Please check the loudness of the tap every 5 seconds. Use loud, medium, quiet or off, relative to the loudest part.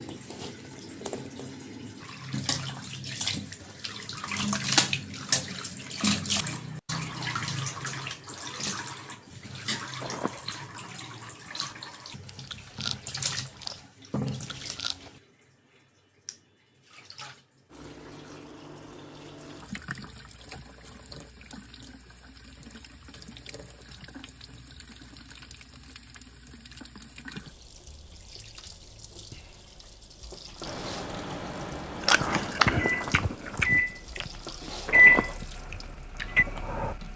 loud, loud, medium, quiet, quiet, quiet, quiet, quiet.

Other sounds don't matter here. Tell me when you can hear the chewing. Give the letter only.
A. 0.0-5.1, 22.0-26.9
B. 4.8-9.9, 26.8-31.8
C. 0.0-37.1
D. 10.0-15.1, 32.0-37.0
D.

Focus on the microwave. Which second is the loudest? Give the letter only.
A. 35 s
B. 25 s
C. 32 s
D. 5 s
A.